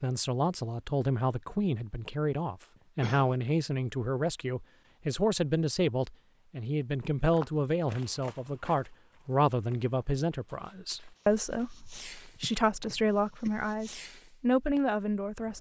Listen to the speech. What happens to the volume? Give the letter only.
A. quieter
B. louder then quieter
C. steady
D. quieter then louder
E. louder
C.